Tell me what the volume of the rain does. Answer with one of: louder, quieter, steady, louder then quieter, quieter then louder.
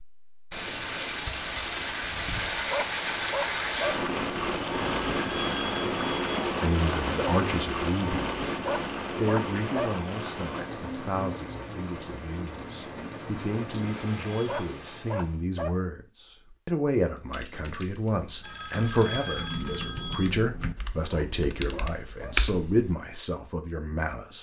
quieter.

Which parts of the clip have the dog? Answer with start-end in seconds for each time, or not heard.
2.7-4.0, 8.7-10.0, 14.4-15.8, 21.1-22.4.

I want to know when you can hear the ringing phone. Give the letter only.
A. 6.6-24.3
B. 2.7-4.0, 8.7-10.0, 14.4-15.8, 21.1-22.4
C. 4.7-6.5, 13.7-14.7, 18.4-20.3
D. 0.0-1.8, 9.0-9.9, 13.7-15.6
C.